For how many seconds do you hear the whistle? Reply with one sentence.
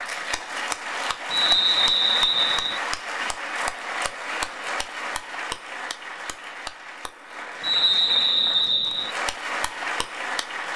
The whistle can be heard for 3 seconds in total.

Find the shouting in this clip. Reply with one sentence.
You can't hear the shouting here.